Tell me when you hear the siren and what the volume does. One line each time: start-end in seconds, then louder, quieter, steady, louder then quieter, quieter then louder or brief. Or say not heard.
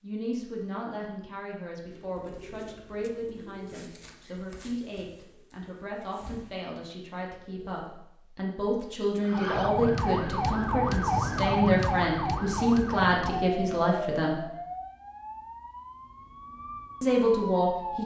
9.2-18.0 quieter.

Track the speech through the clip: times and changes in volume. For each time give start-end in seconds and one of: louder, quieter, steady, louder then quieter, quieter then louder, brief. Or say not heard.
0.0-14.3 louder
17.0-18.0 brief.